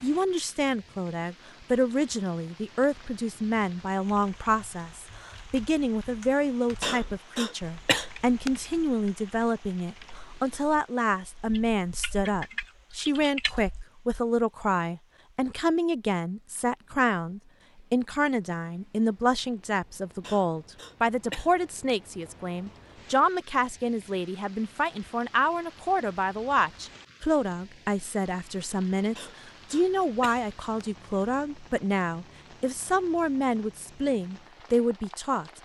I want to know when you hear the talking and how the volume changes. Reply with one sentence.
You can hear the talking from 0.0 to 35.5 s, at a steady volume.